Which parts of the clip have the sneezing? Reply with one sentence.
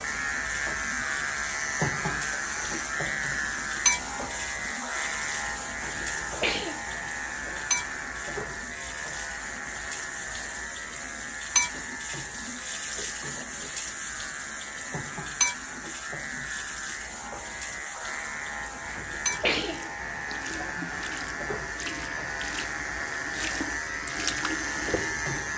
You can hear the sneezing from 5.8 to 6.8 s and from 18.8 to 19.9 s.